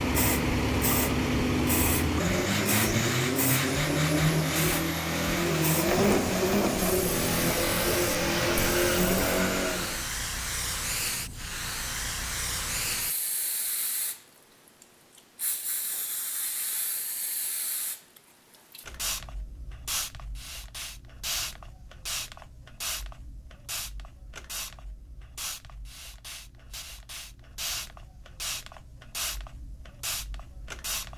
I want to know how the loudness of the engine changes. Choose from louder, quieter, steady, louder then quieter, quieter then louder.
steady.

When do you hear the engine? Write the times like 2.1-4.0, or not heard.
0.0-10.1.